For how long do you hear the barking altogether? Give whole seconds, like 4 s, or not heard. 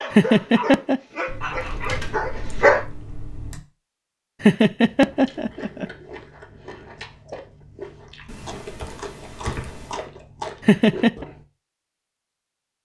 3 s.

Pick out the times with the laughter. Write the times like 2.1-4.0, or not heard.
0.1-1.0, 4.4-5.8, 10.7-11.2.